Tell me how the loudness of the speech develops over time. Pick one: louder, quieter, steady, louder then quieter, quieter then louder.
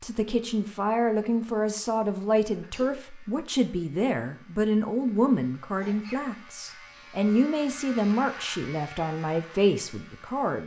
steady.